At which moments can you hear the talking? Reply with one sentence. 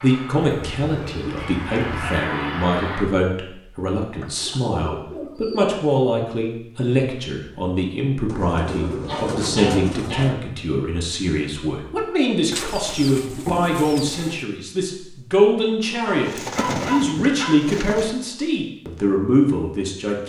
You can hear the talking from 0.0 to 20.2 s.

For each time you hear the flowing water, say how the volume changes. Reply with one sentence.
You can't hear the flowing water here.